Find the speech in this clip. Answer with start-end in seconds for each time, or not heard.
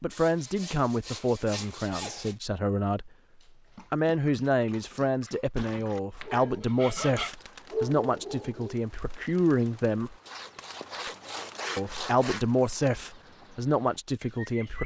0.0-3.1, 3.9-10.2, 11.8-14.8.